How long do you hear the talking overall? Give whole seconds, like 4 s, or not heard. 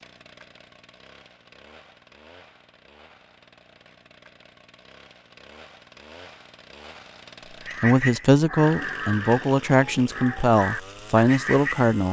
4 s.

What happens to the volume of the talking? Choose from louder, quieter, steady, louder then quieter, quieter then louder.
steady.